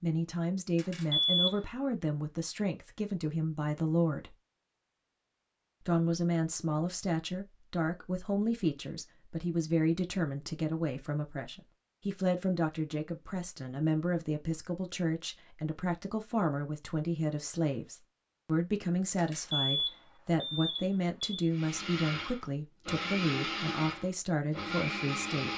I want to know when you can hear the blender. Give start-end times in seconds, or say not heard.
21.5-25.5.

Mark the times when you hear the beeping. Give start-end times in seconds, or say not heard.
0.8-1.6, 19.1-21.5.